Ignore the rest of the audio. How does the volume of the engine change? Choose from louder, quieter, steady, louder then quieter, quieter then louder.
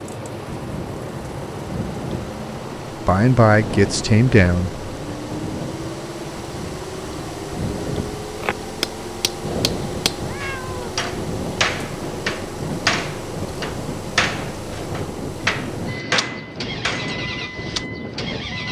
steady.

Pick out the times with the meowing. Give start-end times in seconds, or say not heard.
10.2-10.9.